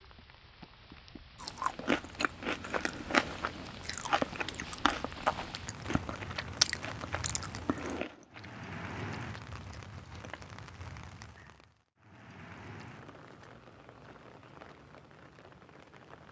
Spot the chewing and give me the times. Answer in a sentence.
The chewing can be heard from 1.4 to 10.6 s.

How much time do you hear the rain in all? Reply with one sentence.
You can hear the rain for 16 seconds altogether.